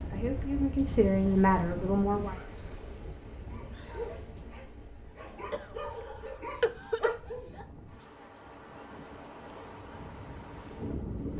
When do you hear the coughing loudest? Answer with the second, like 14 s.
7 s.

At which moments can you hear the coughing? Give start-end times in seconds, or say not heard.
5.5-7.2.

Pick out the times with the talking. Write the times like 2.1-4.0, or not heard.
0.0-2.4.